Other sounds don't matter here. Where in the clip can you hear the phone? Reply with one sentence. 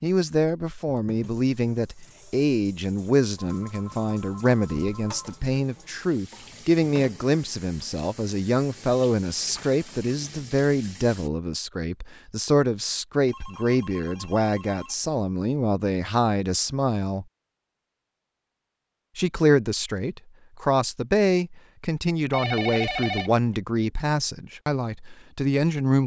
The phone can be heard from 3.4 to 5.2 s, from 13.2 to 14.9 s and from 22.3 to 23.6 s.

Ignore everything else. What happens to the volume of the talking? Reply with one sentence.
The volume of the talking stays about the same.